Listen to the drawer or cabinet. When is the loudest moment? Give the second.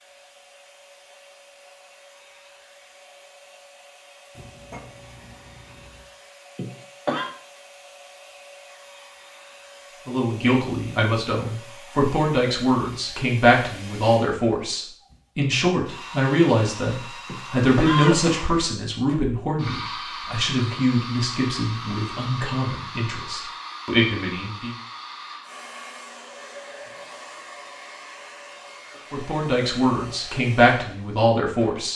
5 s.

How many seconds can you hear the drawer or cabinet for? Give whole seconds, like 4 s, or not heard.
2 s.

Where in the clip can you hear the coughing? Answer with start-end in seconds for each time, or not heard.
6.5-7.3, 17.2-18.4.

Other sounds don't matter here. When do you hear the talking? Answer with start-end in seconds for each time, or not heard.
10.1-24.8, 29.1-31.9.